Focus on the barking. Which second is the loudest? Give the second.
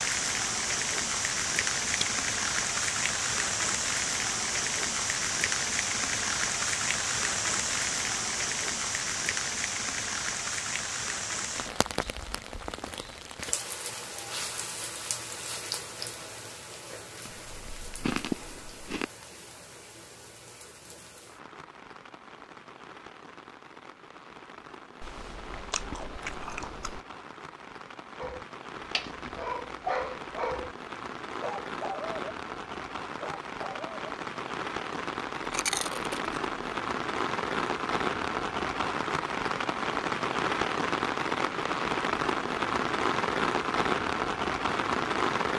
30 s.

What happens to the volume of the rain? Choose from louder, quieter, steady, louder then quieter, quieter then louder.
quieter then louder.